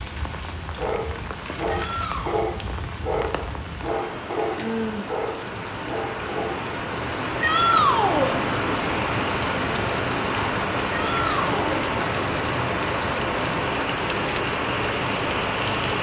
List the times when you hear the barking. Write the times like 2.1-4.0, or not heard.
0.7-6.7.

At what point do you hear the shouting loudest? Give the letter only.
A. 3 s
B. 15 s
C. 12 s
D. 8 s
D.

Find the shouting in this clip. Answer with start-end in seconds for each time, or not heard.
1.6-2.4, 7.4-8.3, 10.9-11.8.